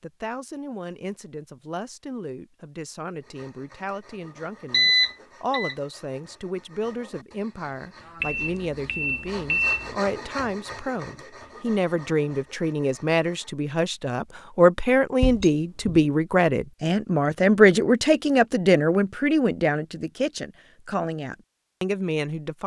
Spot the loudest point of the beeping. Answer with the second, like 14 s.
5 s.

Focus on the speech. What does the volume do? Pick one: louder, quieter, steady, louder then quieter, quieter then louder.
louder.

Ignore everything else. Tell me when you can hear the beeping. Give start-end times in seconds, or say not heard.
4.7-5.8, 8.2-9.9, 15.2-16.1.